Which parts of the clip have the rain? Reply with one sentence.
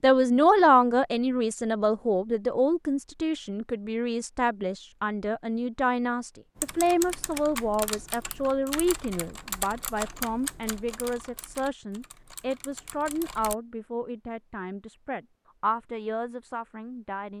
The rain can't be heard in this clip.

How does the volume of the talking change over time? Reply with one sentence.
The volume of the talking goes down.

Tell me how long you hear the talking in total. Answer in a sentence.
You can hear the talking for 17 seconds altogether.